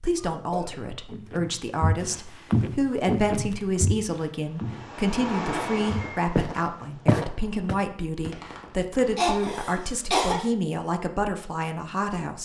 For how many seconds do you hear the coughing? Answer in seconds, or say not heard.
3 s.